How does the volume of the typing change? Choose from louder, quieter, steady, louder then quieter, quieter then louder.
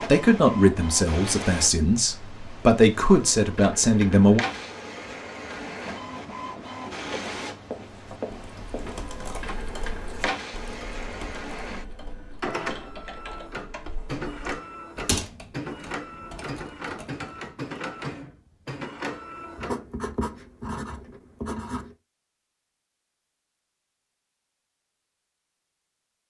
louder then quieter.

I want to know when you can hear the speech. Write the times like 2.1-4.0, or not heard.
0.1-4.4.